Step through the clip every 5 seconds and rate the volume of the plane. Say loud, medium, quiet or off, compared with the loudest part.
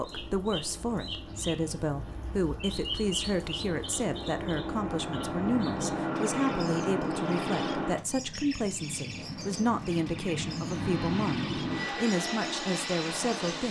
medium, loud, loud.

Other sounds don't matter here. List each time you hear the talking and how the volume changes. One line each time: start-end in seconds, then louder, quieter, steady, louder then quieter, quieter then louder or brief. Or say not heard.
0.0-13.6 steady.